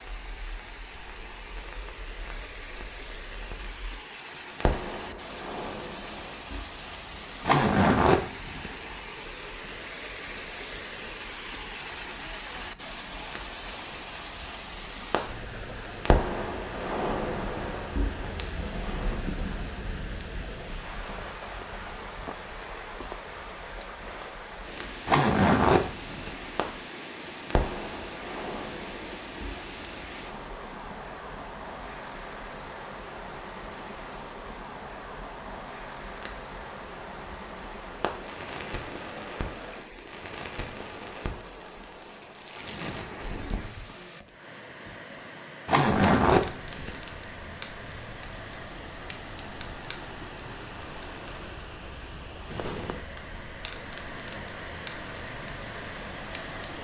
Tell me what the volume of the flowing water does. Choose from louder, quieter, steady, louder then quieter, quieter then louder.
steady.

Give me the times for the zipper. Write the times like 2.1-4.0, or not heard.
7.5-8.8, 25.1-26.4, 45.6-47.0.